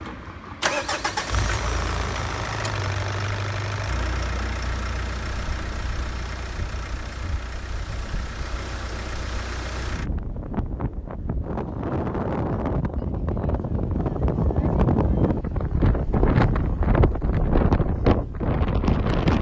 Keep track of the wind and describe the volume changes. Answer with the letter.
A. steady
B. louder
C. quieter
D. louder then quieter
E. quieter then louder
B.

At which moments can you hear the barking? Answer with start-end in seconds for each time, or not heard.
not heard.